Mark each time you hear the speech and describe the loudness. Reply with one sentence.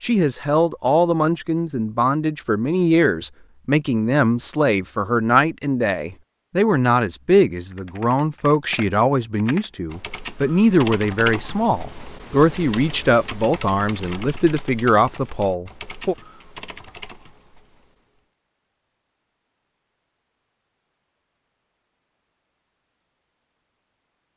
You can hear the speech from 0.0 to 16.1 s, at a steady volume.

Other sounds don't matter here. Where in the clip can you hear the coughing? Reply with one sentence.
You can't hear the coughing here.